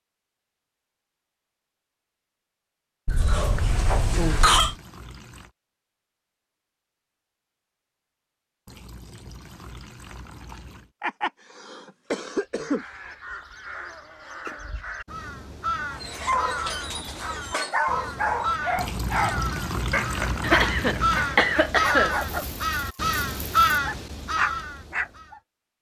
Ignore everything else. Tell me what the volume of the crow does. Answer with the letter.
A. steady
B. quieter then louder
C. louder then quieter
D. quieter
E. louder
E.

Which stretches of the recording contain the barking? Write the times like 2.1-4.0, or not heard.
15.9-25.4.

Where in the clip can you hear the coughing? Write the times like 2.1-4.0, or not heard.
3.0-4.8, 11.0-12.8, 20.4-22.1.